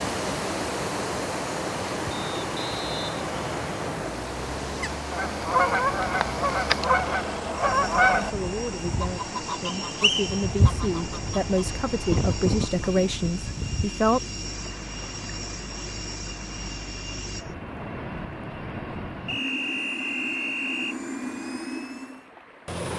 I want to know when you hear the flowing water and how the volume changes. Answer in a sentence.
The flowing water can be heard from 0.0 to 22.9 s, getting quieter.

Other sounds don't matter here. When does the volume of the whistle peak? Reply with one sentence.
The loudest moment of the whistle is at 10 seconds.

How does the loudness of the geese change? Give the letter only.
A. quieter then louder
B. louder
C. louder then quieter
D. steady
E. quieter
E.